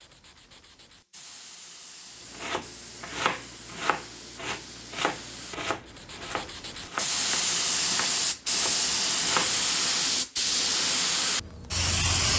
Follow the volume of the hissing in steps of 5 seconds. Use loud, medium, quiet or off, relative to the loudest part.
quiet, loud, loud.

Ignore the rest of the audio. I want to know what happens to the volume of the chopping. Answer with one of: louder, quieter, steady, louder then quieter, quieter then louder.
quieter.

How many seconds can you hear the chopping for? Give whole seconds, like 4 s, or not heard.
7 s.